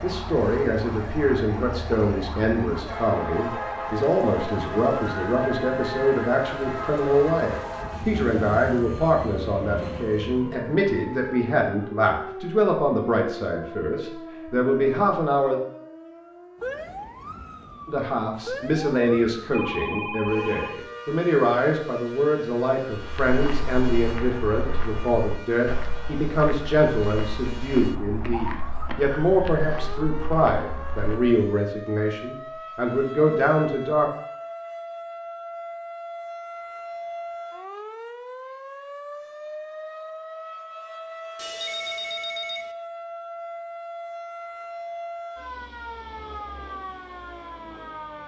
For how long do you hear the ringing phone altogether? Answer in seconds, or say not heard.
3 s.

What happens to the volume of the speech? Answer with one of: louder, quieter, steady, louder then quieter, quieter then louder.
steady.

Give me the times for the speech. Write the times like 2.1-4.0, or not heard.
0.0-15.6, 17.9-34.1.